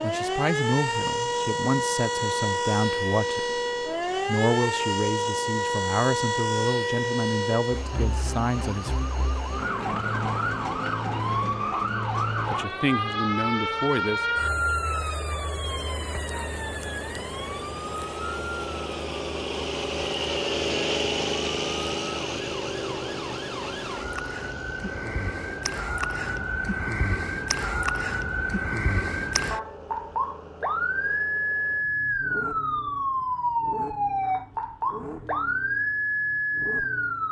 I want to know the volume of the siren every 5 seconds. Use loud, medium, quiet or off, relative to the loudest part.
loud, loud, loud, medium, medium, loud, loud, loud.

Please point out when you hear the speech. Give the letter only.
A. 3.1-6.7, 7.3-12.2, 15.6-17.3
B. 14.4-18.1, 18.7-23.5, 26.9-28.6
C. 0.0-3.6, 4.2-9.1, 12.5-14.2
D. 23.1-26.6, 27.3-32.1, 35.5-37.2
C.